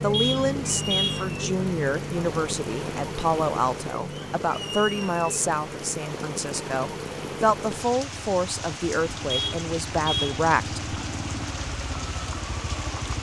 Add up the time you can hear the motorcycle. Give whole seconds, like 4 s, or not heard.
13 s.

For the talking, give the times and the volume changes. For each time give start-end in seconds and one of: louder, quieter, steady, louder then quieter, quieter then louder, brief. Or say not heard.
0.0-10.9 steady.